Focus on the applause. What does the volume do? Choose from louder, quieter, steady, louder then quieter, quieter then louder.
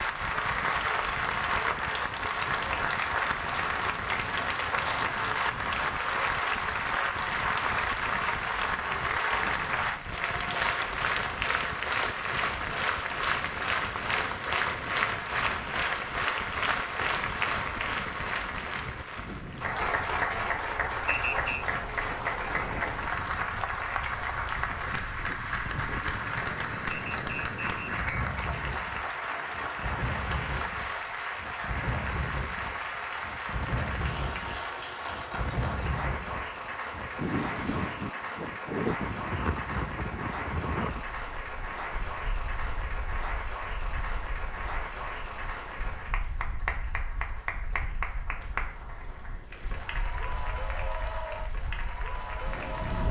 quieter.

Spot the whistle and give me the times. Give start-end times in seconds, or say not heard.
21.1-21.6, 26.9-28.4.